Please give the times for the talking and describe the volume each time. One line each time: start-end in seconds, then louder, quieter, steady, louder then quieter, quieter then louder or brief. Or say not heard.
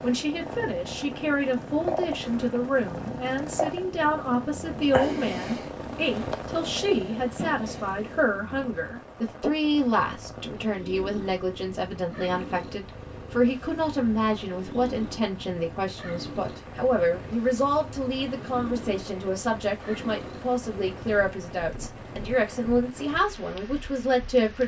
0.0-24.6 steady.